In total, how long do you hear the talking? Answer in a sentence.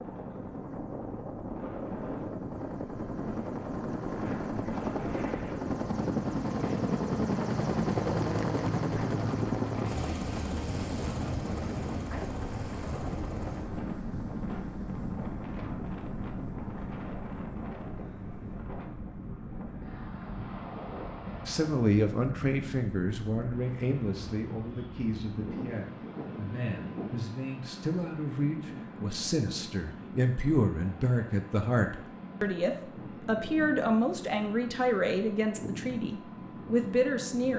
You can hear the talking for 16 seconds altogether.